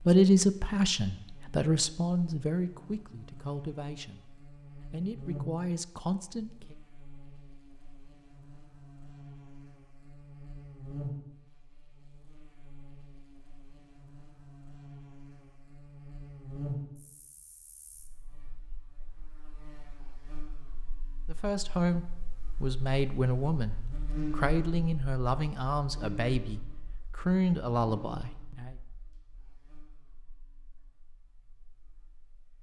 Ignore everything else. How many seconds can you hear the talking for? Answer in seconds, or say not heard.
14 s.